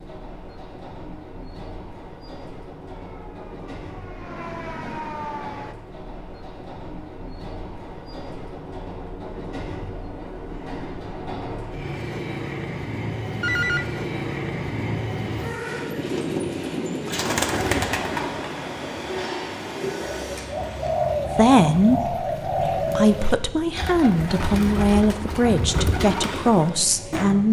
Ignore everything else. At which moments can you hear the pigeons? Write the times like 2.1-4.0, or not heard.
15.9-27.2.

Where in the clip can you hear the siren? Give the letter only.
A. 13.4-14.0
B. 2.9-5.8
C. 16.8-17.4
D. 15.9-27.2
B.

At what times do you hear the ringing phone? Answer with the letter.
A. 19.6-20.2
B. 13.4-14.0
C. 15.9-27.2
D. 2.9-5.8
B.